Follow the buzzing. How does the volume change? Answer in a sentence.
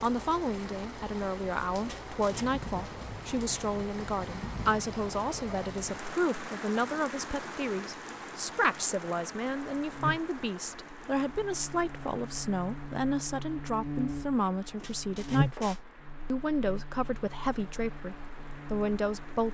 The loudness of the buzzing goes up, then down.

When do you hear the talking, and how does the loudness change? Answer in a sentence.
You can hear the talking from 0.0 to 19.5 s, at a steady volume.